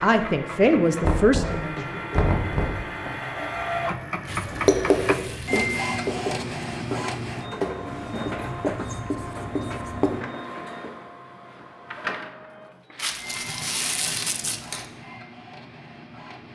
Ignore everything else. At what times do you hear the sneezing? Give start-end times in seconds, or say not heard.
not heard.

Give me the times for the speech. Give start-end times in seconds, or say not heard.
0.0-2.0.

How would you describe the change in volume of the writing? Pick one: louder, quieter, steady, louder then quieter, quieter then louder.
quieter.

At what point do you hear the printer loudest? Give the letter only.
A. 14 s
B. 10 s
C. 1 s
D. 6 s
D.